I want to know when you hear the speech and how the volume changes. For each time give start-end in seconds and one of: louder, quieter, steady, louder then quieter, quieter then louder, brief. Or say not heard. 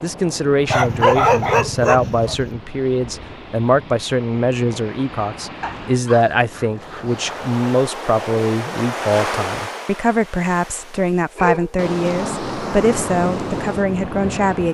0.0-14.6 steady.